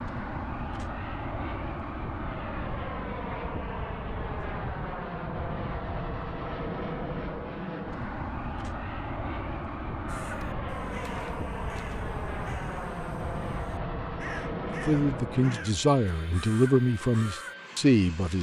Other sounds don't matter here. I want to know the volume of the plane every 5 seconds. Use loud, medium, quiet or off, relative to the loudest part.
loud, loud, loud, medium.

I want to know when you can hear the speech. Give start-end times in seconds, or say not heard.
14.7-18.3.